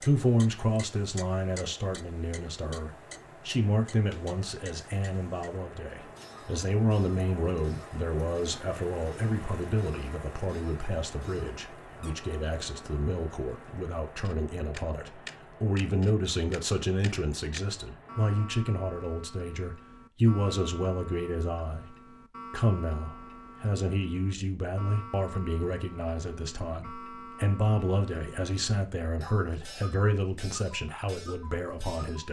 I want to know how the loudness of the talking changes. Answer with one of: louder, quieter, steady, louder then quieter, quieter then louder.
steady.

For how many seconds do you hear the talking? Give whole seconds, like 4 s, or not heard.
32 s.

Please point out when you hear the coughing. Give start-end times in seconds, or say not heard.
not heard.